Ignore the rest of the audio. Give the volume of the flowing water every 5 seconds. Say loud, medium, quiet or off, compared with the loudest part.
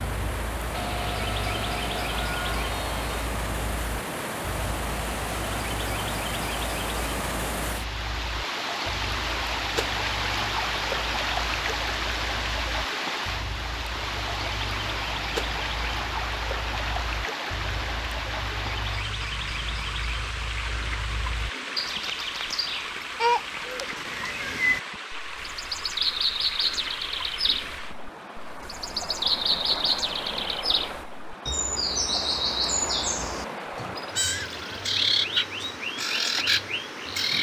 loud, loud, loud, loud, medium, medium, medium, medium.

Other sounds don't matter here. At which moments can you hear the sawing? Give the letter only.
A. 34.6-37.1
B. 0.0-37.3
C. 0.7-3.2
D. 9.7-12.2
C.